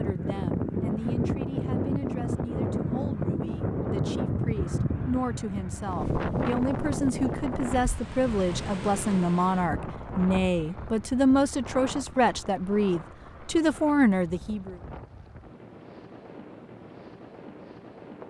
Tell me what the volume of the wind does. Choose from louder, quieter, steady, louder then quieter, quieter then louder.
quieter.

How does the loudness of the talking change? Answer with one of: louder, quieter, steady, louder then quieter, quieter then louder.
louder.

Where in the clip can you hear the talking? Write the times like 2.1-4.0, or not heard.
0.0-14.8.